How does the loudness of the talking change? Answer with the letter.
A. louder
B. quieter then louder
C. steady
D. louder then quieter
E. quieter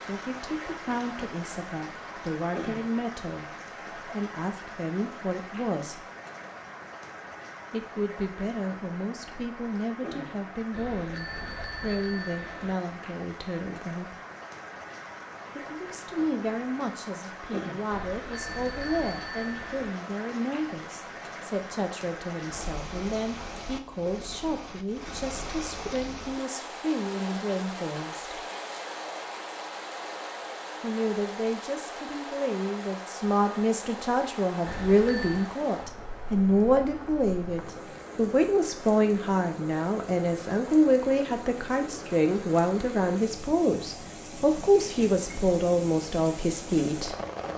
A.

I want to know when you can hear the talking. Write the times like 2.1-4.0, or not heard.
0.1-6.0, 7.7-14.2, 15.6-28.4, 30.8-47.1.